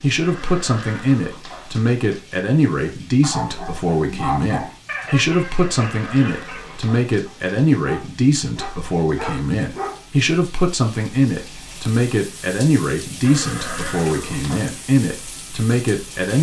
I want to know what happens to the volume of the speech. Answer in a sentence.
The loudness of the speech stays about the same.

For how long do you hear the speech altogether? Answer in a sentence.
You can hear the speech for 16 seconds altogether.